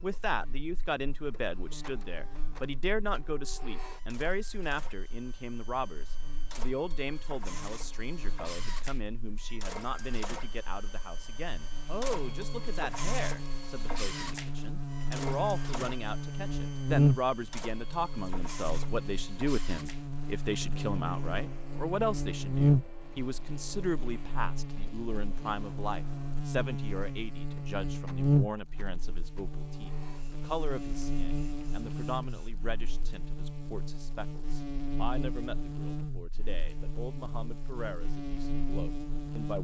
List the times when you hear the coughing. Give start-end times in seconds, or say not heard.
not heard.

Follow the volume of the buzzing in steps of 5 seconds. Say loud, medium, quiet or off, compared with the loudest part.
quiet, quiet, medium, loud, loud, loud, medium, medium.